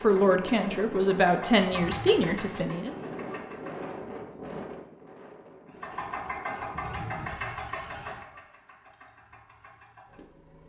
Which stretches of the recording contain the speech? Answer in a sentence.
You can hear the speech from 0.0 to 2.9 s.